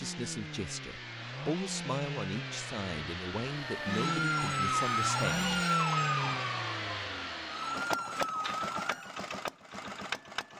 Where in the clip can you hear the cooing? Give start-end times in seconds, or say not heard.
not heard.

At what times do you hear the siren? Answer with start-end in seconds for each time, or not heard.
3.5-9.2.